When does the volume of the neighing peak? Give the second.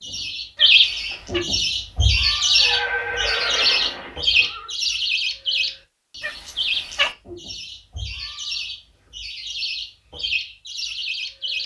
3 s.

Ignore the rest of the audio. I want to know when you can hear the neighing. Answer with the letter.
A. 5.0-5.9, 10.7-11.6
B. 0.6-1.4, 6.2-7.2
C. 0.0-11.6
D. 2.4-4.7
D.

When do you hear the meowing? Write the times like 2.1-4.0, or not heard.
0.6-1.4, 6.2-7.2.